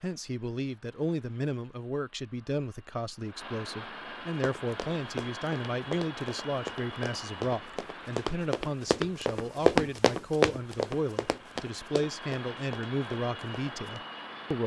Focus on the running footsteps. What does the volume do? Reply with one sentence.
The volume of the running footsteps goes up, then down.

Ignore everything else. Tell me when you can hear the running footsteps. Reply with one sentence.
You can hear the running footsteps from 4.4 to 14.0 s.